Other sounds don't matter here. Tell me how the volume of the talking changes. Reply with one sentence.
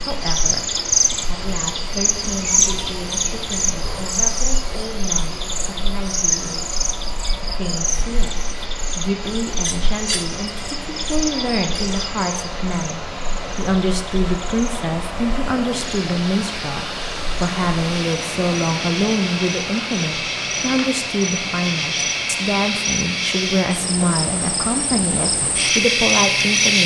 The volume of the talking goes up.